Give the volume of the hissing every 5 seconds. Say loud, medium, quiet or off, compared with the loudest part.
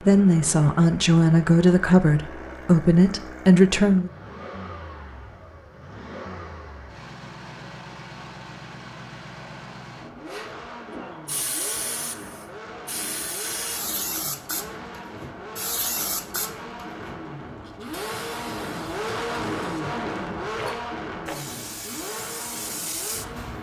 off, off, loud, loud, loud.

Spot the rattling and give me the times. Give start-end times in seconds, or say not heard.
20.6-21.4.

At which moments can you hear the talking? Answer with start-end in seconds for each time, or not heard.
0.0-4.1.